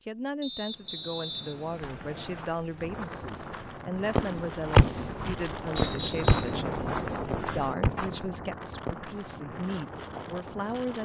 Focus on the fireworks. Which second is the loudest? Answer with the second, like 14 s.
5 s.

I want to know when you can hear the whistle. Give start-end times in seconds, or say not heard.
0.4-2.5, 5.8-6.6.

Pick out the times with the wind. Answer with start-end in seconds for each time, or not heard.
2.8-11.0.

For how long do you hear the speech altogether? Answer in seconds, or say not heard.
11 s.